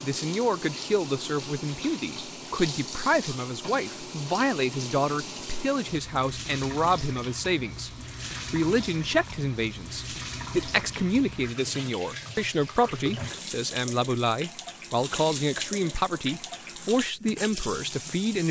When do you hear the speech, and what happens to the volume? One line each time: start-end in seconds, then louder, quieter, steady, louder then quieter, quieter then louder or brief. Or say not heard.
0.0-18.4 steady.